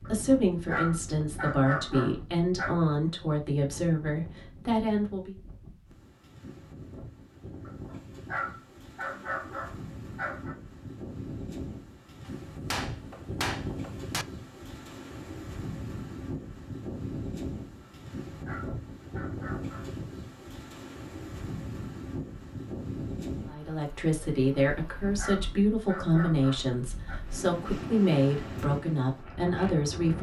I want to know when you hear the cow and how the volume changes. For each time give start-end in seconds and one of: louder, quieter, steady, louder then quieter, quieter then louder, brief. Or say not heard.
not heard.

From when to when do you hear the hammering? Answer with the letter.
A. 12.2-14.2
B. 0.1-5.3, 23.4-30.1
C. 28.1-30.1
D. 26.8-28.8
A.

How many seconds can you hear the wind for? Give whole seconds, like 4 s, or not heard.
30 s.